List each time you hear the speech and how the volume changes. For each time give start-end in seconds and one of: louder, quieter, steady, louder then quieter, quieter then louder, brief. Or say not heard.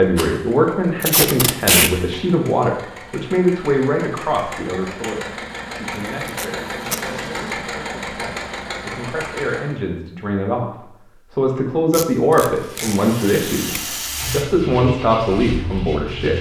0.0-16.3 quieter then louder.